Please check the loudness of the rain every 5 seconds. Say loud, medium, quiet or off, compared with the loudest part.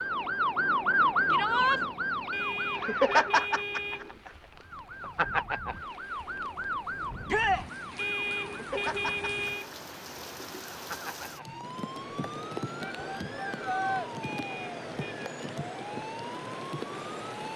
quiet, medium, loud, loud.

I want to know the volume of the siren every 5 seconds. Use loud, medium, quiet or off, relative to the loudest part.
loud, medium, quiet, quiet.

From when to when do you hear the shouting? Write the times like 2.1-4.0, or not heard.
1.3-1.8, 7.2-7.7, 12.8-14.1.